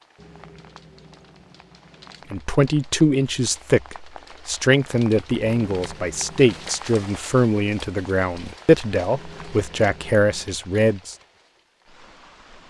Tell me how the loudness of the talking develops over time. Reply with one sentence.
The volume of the talking stays about the same.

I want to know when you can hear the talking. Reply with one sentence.
The talking can be heard from 2.3 to 11.2 s.